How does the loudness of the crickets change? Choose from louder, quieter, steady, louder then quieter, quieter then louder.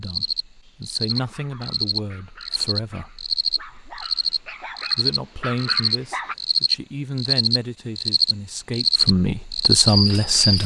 louder.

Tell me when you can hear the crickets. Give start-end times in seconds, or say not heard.
0.0-10.6.